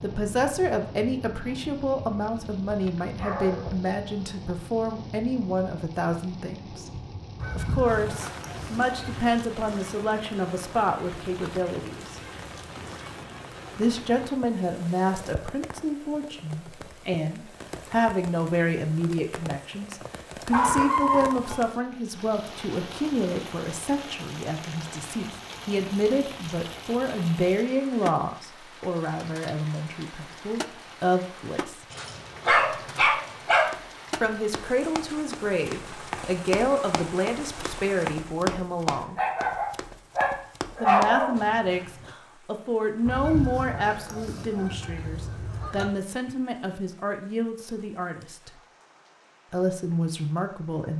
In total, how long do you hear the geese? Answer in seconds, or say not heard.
5 s.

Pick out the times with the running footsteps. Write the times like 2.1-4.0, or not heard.
33.6-42.1.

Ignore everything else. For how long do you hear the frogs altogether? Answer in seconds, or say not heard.
not heard.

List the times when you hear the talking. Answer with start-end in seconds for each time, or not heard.
0.0-6.9, 7.5-12.2, 13.8-31.9, 34.2-39.2, 40.8-48.5, 49.5-50.9.